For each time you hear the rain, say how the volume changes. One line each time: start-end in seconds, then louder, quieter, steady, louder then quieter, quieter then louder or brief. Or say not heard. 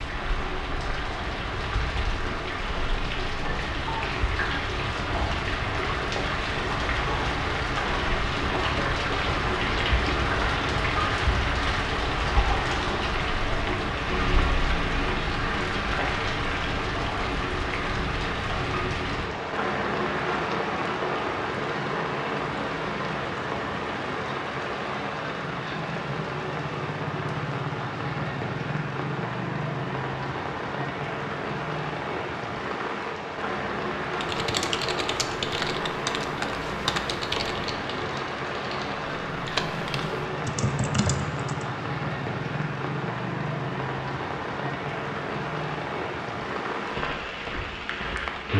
0.0-48.5 steady.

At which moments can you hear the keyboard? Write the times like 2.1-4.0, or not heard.
34.1-41.6.